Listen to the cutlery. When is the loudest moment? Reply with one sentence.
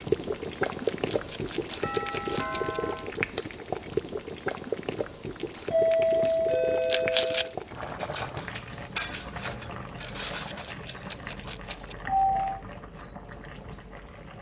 The volume of the cutlery peaks at 9 seconds.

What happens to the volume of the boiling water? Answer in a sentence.
The loudness of the boiling water goes down.